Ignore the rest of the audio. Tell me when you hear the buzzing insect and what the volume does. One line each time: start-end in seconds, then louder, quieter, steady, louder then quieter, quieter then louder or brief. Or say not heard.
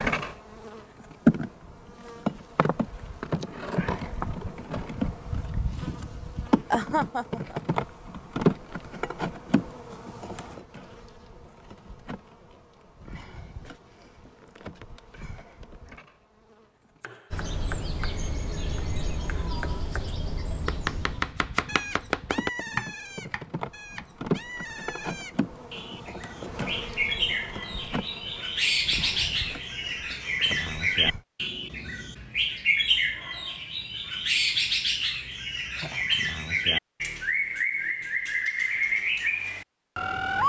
0.0-17.0 quieter
21.2-31.2 louder then quieter.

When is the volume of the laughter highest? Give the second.
7 s.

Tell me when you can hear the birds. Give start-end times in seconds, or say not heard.
17.3-40.4.